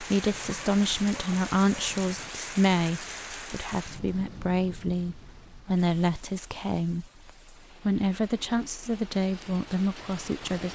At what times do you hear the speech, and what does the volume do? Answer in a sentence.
The speech can be heard from 0.0 to 10.7 s, at a steady volume.